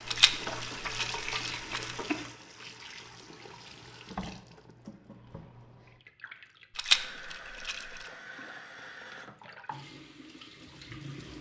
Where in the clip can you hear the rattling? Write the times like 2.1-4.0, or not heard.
0.1-1.9, 6.8-8.1.